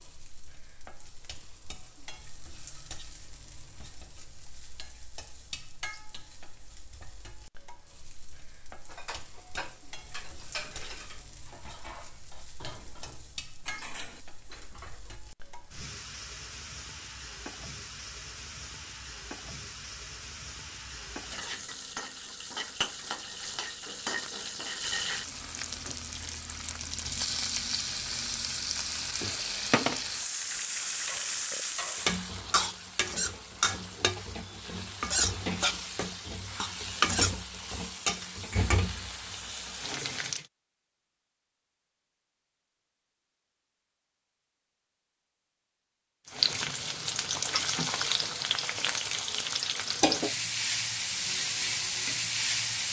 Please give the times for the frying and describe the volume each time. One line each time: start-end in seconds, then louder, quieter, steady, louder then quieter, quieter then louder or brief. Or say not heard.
0.0-40.5 louder
46.2-52.8 steady.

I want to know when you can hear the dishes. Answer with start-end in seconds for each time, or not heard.
8.8-15.2.